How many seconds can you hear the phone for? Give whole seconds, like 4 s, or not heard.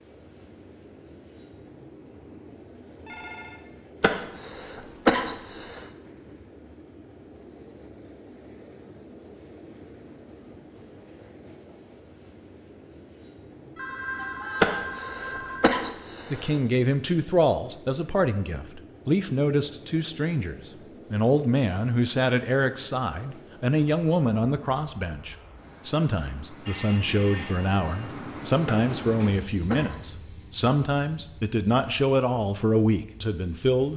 4 s.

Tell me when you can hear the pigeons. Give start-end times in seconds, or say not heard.
not heard.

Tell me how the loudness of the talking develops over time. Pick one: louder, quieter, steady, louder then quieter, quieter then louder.
steady.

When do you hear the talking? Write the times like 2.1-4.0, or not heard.
16.3-33.9.